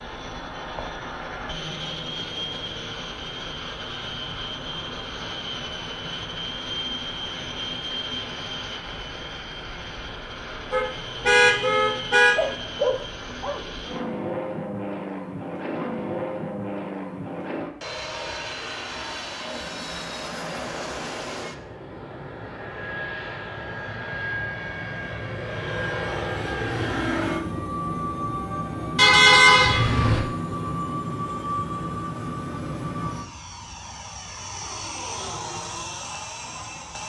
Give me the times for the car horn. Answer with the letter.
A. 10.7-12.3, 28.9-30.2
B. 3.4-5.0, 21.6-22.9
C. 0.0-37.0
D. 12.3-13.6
A.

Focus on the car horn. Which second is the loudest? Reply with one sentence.
The loudest moment of the car horn is at 29 seconds.